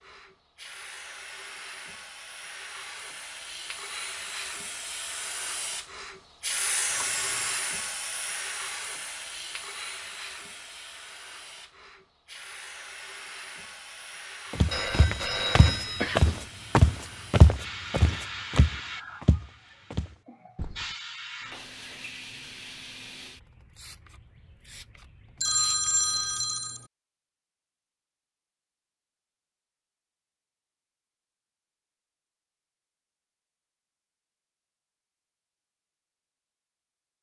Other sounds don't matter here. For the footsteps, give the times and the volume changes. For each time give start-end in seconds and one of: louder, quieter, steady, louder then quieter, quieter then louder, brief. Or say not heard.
14.5-20.9 louder then quieter.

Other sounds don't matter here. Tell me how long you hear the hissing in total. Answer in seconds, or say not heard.
26 s.